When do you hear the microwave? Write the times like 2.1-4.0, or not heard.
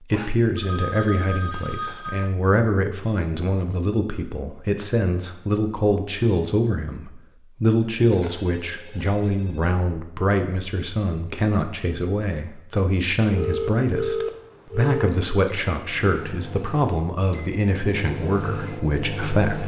15.3-19.6.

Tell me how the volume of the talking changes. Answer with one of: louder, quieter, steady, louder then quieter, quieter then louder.
steady.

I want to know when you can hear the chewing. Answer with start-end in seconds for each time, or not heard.
not heard.